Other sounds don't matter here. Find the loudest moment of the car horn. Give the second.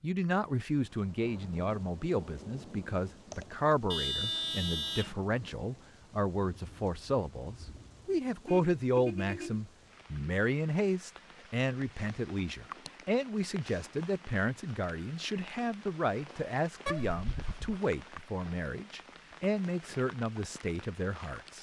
4 s.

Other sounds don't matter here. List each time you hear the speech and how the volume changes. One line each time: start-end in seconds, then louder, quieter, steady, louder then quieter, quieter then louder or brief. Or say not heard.
0.0-21.5 steady.